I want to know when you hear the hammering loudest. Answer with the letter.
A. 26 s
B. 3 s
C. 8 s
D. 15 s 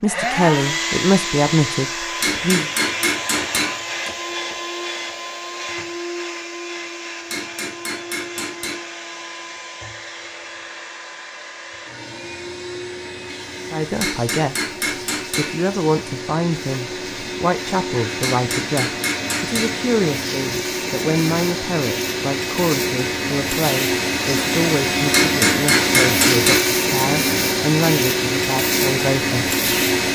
A.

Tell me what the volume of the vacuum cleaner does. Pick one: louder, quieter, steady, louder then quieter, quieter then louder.
quieter then louder.